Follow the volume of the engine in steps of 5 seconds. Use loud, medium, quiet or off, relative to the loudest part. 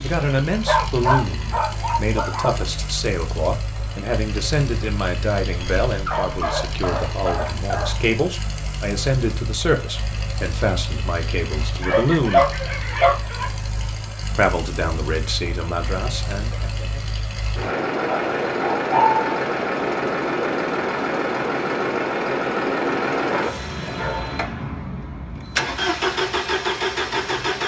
medium, medium, medium, loud, loud, loud.